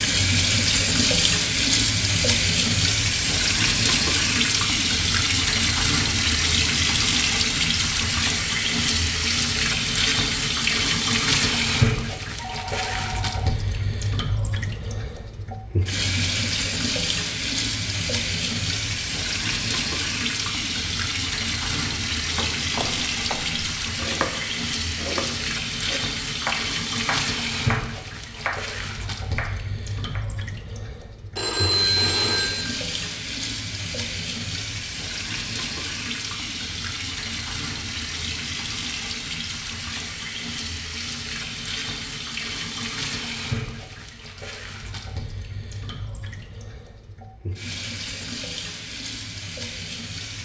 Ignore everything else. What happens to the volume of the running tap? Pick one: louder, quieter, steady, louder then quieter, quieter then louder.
quieter.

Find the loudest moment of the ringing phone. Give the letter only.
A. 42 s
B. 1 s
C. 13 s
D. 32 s
D.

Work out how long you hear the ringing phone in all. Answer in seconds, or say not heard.
3 s.